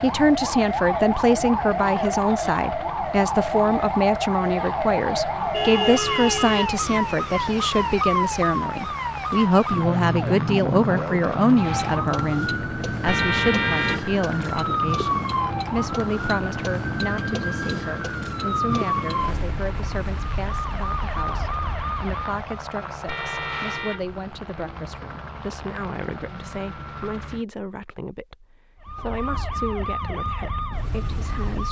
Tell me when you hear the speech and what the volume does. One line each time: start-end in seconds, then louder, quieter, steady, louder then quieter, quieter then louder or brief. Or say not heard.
0.0-31.6 quieter.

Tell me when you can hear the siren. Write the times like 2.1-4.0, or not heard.
0.0-22.6, 28.8-31.6.